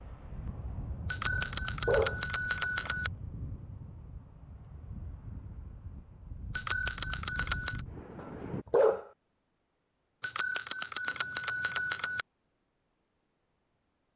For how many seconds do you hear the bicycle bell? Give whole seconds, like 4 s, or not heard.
5 s.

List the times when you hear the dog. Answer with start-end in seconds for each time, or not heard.
1.3-2.2, 8.2-9.1.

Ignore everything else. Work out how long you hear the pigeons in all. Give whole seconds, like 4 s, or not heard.
not heard.